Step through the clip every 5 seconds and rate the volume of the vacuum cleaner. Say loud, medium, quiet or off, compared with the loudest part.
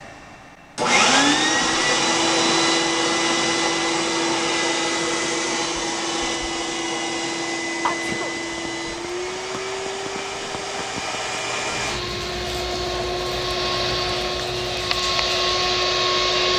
loud, medium, medium, loud.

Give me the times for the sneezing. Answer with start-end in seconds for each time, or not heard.
7.8-8.3.